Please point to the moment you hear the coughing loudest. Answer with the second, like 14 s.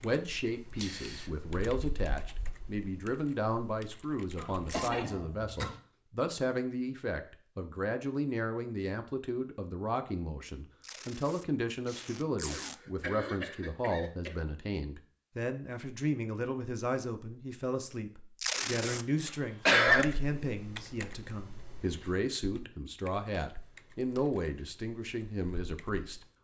20 s.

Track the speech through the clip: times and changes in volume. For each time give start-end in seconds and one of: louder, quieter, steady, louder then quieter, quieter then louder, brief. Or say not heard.
0.0-26.2 steady.